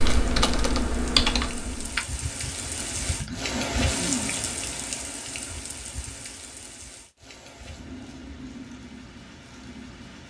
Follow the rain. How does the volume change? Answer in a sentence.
The loudness of the rain goes up, then down.